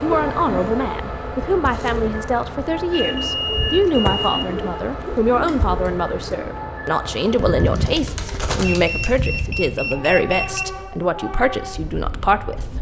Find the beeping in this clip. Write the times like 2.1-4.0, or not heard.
3.0-4.4, 8.6-10.7.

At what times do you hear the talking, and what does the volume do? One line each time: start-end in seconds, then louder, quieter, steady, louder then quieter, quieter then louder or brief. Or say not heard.
0.0-12.7 steady.